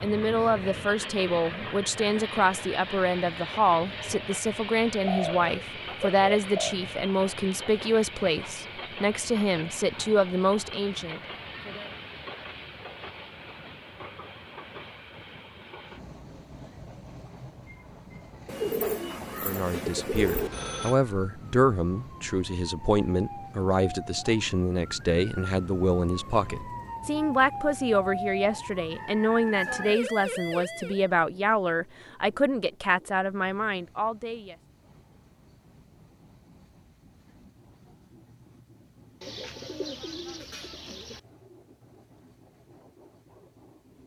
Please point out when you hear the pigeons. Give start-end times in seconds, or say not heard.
5.0-6.8, 18.4-20.5, 39.2-41.2.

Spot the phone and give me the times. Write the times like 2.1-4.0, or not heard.
20.2-20.9.